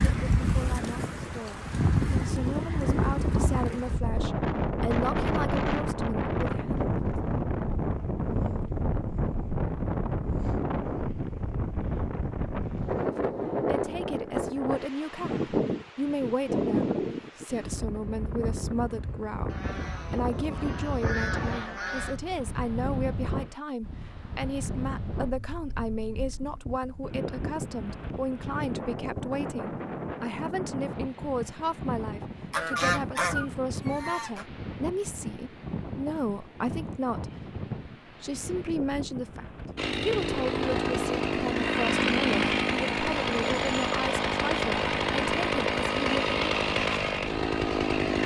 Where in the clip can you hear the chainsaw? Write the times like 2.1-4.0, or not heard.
39.8-48.2.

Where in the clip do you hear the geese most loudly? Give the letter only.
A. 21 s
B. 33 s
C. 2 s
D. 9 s
B.